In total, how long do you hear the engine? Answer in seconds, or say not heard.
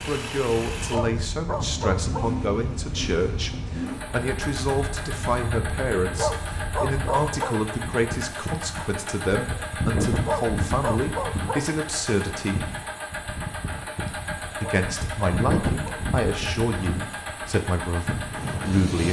19 s.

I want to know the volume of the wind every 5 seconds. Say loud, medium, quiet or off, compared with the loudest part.
medium, loud, loud, loud.